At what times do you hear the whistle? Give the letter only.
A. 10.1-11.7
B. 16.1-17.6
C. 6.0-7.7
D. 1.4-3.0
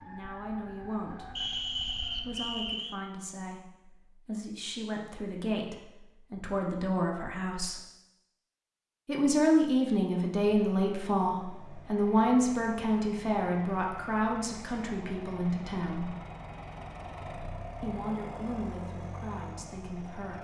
D.